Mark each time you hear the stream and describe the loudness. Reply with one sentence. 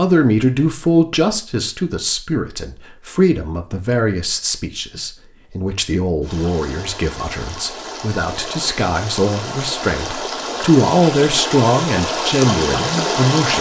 You can hear the stream from 6.2 to 13.5 s, getting louder.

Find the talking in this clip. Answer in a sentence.
The talking can be heard from 0.0 to 13.5 s.